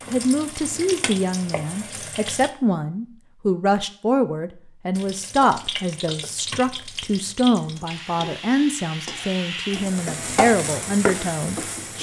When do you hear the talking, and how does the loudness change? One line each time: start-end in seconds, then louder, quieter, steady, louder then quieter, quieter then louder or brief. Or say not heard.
0.1-11.9 steady.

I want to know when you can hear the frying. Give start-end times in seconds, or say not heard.
0.0-2.5, 5.0-11.9.